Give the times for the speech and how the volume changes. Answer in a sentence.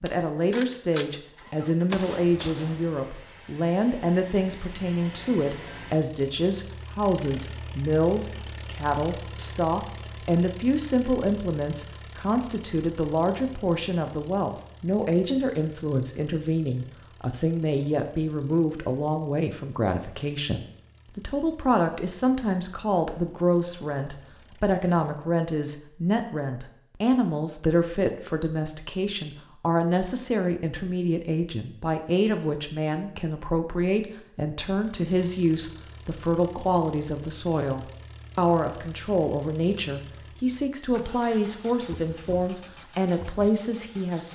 The speech can be heard from 0.0 to 44.2 s, at a steady volume.